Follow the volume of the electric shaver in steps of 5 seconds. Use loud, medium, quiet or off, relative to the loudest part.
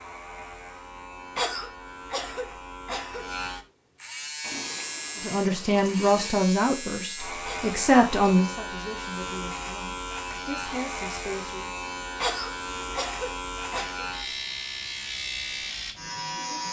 medium, loud, loud, loud.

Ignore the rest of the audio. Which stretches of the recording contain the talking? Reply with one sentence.
You can hear the talking from 5.2 to 11.8 s.